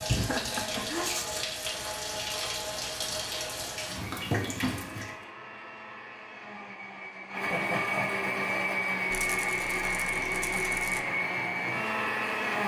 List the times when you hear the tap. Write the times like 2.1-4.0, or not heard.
0.0-5.2.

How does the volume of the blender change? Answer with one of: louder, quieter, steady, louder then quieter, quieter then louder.
louder.